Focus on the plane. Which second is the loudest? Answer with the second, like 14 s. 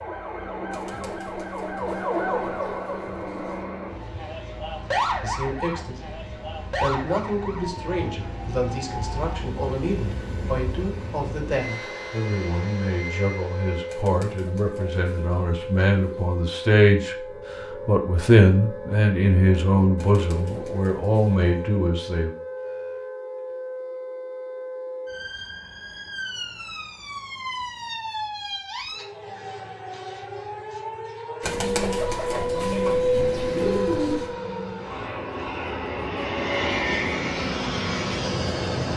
37 s.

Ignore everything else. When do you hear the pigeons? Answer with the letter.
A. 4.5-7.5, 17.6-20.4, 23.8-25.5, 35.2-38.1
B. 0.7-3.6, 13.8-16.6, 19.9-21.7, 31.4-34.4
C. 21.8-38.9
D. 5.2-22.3
B.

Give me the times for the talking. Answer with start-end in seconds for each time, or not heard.
5.2-22.3.